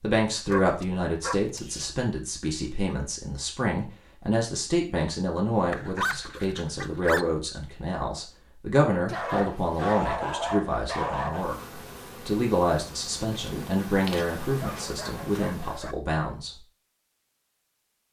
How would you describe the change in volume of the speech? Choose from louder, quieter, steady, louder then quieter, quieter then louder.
steady.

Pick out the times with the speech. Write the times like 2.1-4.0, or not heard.
0.0-16.5.